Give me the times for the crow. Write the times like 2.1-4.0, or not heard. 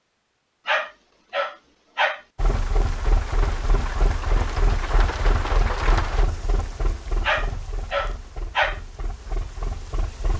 not heard.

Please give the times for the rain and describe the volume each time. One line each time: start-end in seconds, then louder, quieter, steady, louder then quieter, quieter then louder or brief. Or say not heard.
2.4-10.3 quieter.